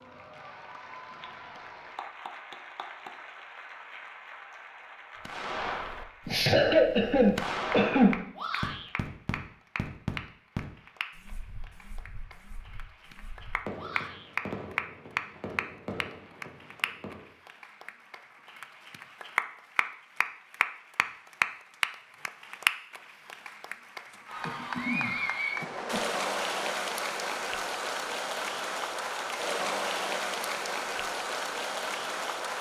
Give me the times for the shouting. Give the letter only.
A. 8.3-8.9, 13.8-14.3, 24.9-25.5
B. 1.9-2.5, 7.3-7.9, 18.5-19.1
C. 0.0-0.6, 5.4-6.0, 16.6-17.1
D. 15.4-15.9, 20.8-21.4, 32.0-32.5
A.